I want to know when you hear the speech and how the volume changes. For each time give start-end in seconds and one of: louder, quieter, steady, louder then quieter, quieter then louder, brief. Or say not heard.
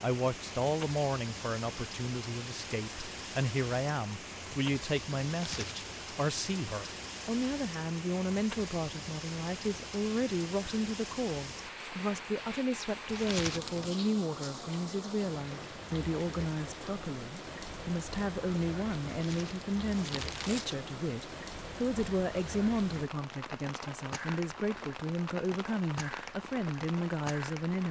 0.0-27.8 steady.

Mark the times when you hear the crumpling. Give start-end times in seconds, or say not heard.
5.3-5.8, 13.1-13.9, 19.1-20.8.